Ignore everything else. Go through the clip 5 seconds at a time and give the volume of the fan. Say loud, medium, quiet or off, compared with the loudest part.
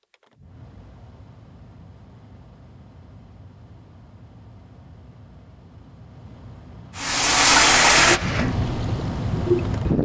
quiet, loud.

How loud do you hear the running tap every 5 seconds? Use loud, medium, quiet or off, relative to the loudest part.
off, loud.